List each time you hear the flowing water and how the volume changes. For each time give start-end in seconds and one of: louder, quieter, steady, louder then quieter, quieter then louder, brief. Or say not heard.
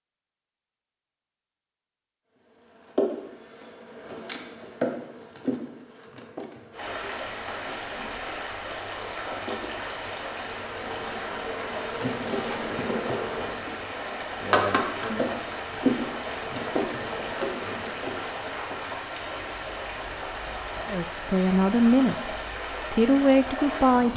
6.7-24.1 steady.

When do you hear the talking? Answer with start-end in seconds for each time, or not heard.
20.9-24.1.